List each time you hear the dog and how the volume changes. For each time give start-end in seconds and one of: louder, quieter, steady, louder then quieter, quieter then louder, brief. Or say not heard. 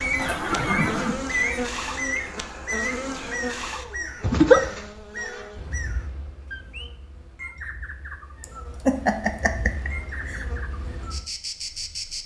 not heard.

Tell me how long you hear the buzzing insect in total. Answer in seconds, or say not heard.
12 s.